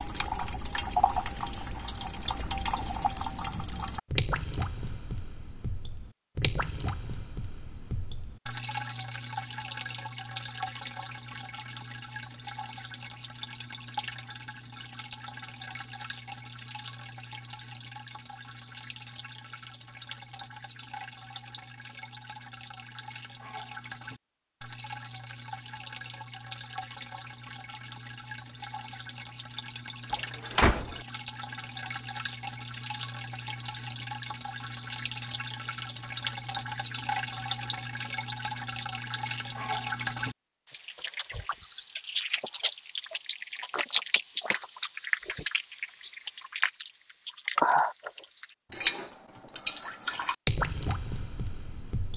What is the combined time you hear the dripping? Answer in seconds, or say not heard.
52 s.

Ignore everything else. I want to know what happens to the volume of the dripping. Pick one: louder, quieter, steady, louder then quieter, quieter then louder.
quieter then louder.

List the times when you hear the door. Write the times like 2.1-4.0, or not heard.
30.1-31.0.